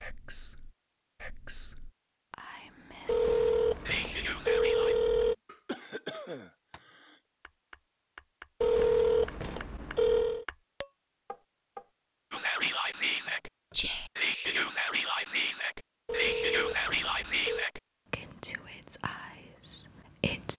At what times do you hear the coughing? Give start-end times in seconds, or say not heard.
5.7-7.2.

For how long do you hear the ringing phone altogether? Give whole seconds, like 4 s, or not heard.
6 s.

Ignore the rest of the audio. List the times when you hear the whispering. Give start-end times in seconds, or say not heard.
0.0-5.0, 12.3-20.5.